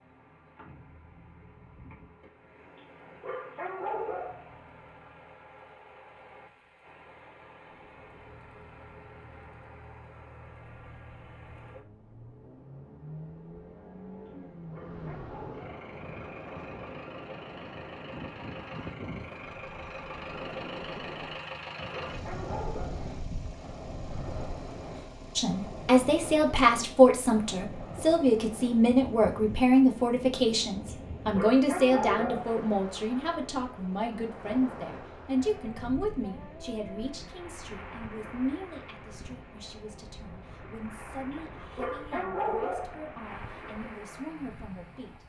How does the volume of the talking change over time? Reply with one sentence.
The loudness of the talking goes down.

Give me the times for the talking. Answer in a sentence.
The talking can be heard from 25.4 to 45.1 s.